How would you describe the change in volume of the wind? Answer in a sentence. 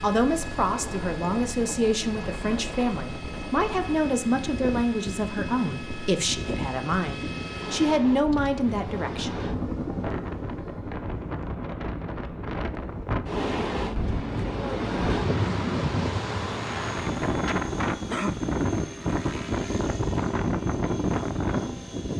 The volume of the wind goes up.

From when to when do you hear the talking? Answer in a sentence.
You can hear the talking from 0.0 to 9.4 s.